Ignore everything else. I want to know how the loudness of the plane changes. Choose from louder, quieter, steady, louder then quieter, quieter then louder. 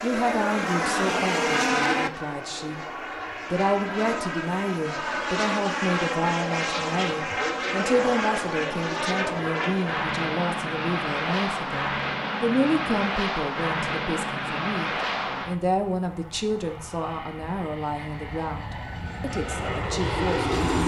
quieter.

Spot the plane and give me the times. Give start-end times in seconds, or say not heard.
0.0-20.8.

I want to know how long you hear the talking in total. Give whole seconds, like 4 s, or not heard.
20 s.